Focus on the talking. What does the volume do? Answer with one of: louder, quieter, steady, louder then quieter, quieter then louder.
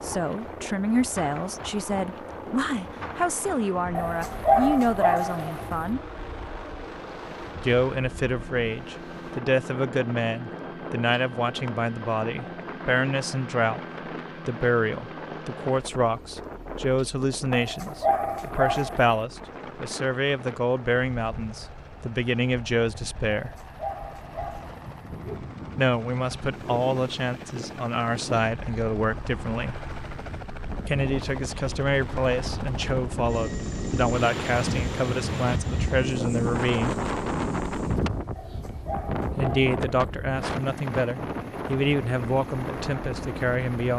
steady.